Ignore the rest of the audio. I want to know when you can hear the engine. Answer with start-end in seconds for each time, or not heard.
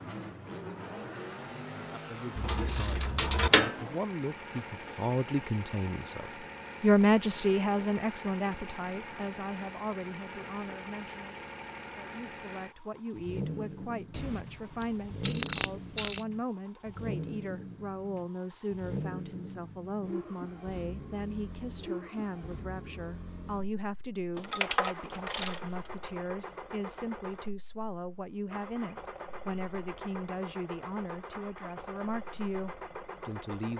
0.0-33.7.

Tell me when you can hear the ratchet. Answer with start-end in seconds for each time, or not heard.
2.4-3.8, 14.1-16.2, 24.4-25.6.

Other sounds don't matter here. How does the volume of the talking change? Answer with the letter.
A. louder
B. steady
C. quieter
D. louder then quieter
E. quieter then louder
C.